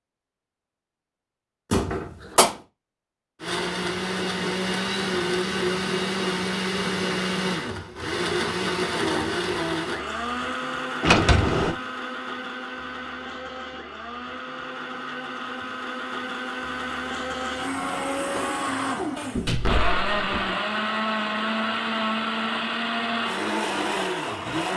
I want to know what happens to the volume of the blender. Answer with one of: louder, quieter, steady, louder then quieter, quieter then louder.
quieter then louder.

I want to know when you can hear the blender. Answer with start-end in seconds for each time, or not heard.
3.4-24.7.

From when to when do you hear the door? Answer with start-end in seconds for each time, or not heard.
1.7-2.5, 11.0-11.8, 19.4-20.5.